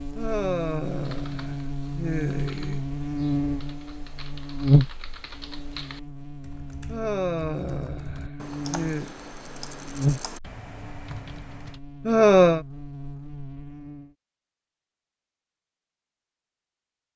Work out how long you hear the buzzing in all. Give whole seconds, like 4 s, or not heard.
14 s.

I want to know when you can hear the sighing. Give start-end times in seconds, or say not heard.
0.1-2.8, 6.8-9.1, 12.1-12.6.